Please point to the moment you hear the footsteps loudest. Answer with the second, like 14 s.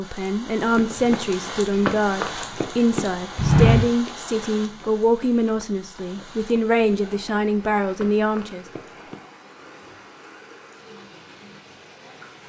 4 s.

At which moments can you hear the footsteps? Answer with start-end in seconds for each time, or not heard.
0.8-9.2.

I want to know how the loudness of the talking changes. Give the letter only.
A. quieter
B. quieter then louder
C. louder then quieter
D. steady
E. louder
D.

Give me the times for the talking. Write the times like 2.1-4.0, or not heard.
0.0-8.7.